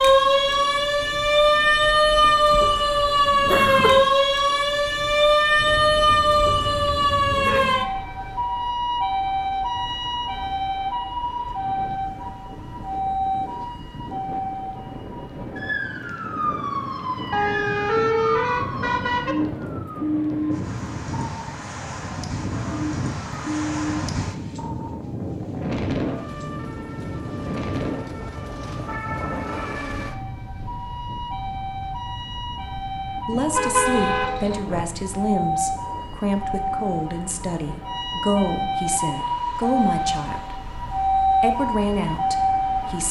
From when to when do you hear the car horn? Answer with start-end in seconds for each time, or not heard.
5.5-7.6, 17.3-19.4, 33.3-34.9.